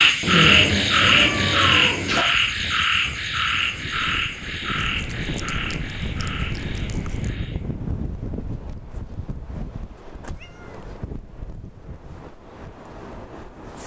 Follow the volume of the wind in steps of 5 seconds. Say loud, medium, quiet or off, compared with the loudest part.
medium, loud, medium.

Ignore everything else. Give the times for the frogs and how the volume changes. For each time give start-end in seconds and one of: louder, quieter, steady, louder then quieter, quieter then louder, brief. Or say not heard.
0.0-7.7 quieter.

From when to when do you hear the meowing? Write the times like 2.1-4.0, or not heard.
0.2-2.2, 4.7-7.3, 10.2-11.0.